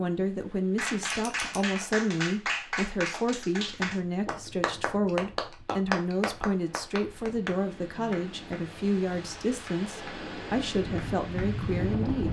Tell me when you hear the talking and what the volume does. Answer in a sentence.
You can hear the talking from 0.0 to 12.2 s, at a steady volume.